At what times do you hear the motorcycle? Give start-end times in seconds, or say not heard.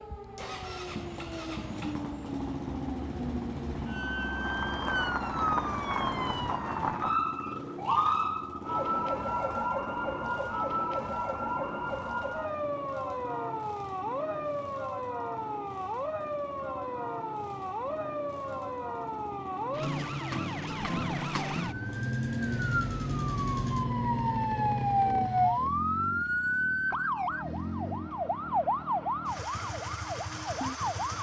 0.3-31.1.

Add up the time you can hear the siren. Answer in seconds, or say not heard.
31 s.